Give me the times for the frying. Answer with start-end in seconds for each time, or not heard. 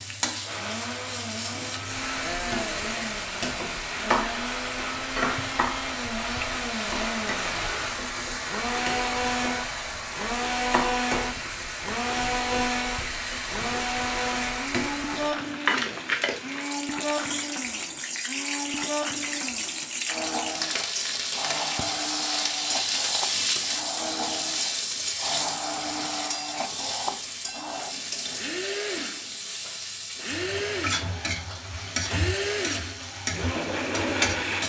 0.0-34.6.